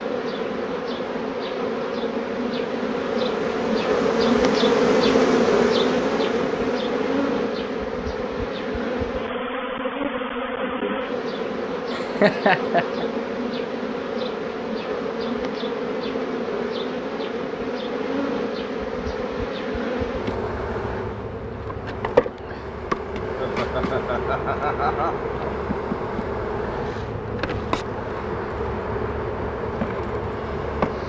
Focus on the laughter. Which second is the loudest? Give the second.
12 s.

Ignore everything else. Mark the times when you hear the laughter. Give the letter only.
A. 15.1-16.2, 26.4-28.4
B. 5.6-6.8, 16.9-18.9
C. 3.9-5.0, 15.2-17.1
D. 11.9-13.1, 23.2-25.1
D.